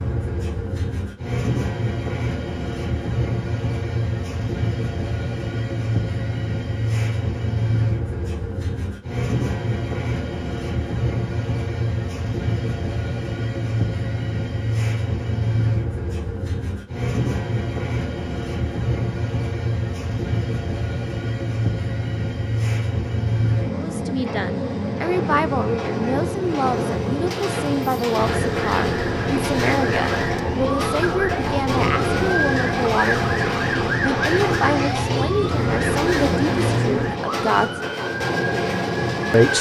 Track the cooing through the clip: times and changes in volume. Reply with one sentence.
You can't hear the cooing here.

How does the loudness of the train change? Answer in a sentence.
The loudness of the train stays about the same.